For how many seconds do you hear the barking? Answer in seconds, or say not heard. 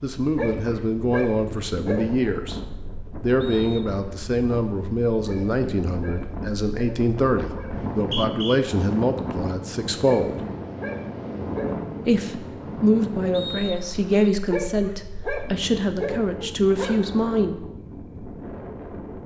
9 s.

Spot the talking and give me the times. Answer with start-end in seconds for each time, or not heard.
0.0-2.6, 3.2-10.4, 12.1-17.6.